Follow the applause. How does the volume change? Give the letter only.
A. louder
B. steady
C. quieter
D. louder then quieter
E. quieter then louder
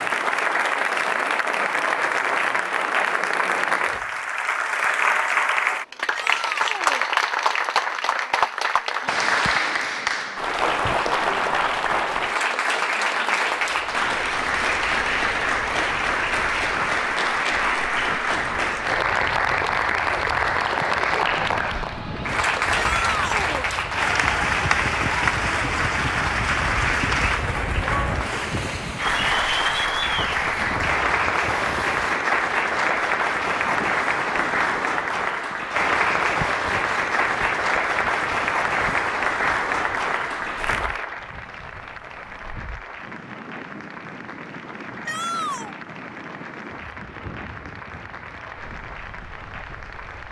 C.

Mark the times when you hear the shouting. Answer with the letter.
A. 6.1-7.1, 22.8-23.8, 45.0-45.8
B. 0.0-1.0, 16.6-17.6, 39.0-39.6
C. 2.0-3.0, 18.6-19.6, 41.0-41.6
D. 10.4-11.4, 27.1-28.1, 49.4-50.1
A.